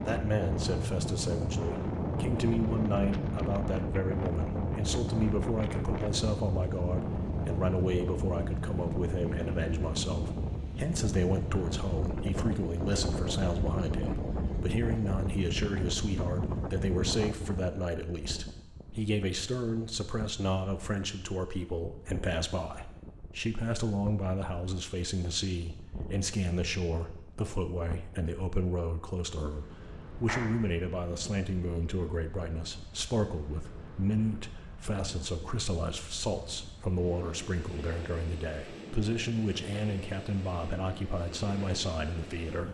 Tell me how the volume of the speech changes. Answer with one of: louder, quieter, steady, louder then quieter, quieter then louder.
steady.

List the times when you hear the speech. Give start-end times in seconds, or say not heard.
0.0-42.6.